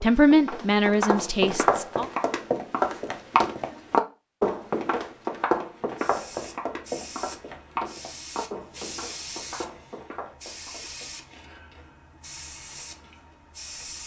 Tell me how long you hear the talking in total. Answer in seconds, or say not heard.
2 s.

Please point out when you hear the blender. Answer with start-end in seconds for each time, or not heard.
not heard.